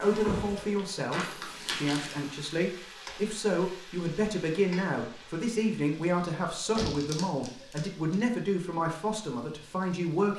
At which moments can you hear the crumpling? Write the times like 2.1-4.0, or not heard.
1.1-2.1, 6.8-8.2.